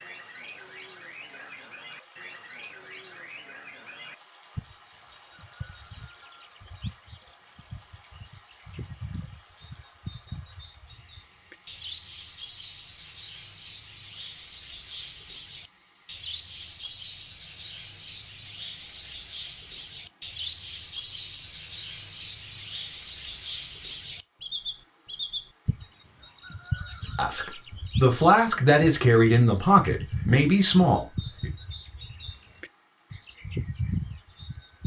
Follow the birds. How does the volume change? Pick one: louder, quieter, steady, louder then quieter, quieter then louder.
louder.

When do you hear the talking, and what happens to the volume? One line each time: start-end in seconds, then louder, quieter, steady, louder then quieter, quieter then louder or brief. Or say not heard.
27.1-31.5 steady.